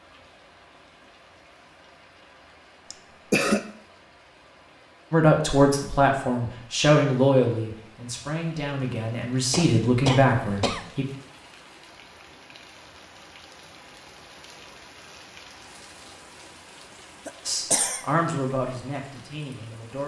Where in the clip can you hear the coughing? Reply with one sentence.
The coughing can be heard from 2.9 to 3.6 s, from 9.5 to 10.9 s and from 17.2 to 18.1 s.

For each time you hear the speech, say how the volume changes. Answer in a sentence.
The speech can be heard from 5.1 to 11.1 s, getting quieter then louder; and briefly from 17.4 to 20.0 s.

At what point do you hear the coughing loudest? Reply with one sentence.
The volume of the coughing peaks at 3 seconds.